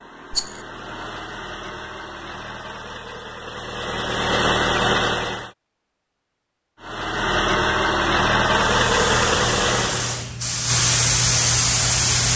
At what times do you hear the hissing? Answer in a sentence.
The hissing can be heard from 8.6 to 12.3 s.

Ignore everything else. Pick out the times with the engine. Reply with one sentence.
You can hear the engine from 0.0 to 5.5 s and from 6.8 to 10.2 s.